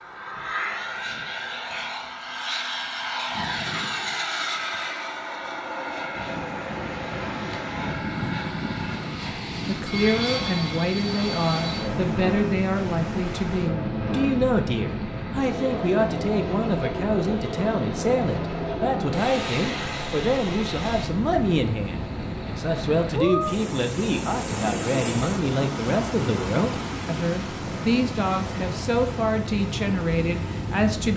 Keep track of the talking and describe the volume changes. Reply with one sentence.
The volume of the talking stays about the same.